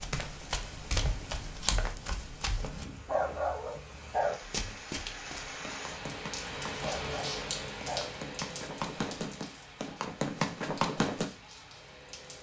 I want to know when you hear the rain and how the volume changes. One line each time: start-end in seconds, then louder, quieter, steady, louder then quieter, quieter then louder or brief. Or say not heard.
0.1-12.3 louder then quieter.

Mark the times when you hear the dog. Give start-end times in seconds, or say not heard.
3.0-4.4, 6.8-8.1.